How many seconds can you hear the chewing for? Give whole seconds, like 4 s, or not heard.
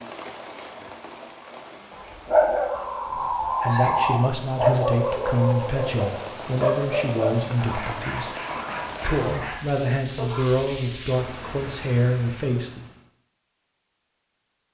not heard.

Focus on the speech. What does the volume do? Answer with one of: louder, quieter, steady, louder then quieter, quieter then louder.
steady.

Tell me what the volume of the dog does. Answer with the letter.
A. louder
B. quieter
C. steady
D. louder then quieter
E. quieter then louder
B.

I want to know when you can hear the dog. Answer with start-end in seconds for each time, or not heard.
1.9-10.5.